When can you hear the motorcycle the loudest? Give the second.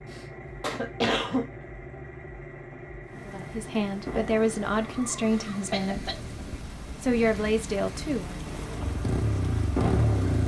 10 s.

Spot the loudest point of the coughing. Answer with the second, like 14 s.
1 s.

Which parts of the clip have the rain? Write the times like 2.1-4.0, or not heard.
3.0-10.4.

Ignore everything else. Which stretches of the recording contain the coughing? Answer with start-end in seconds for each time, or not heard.
0.1-1.5, 5.3-6.2.